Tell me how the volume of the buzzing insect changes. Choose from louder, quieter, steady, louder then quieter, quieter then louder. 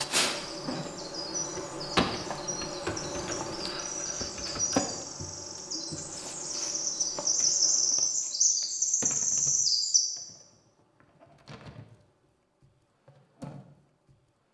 quieter.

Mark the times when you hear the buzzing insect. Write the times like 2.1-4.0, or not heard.
0.0-14.4.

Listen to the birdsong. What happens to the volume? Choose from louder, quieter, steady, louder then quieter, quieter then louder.
louder.